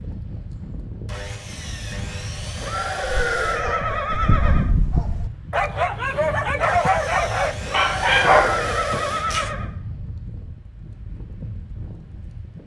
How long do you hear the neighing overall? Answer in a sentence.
You can hear the neighing for 4 seconds altogether.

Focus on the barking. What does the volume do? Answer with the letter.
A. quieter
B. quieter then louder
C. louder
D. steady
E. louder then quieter
C.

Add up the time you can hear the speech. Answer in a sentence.
You can't hear the speech here.